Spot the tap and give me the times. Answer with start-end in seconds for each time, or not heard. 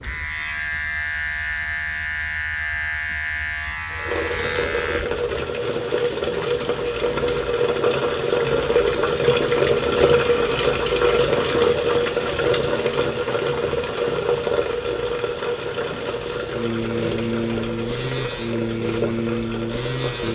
3.9-20.3.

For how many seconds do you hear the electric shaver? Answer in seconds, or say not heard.
20 s.